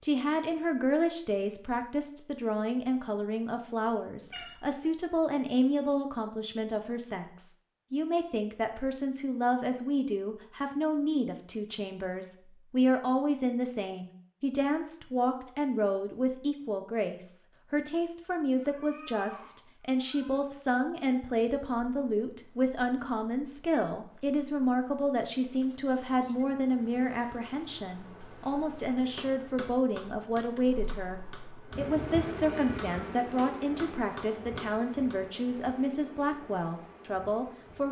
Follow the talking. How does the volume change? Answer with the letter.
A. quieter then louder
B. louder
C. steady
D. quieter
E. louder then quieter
C.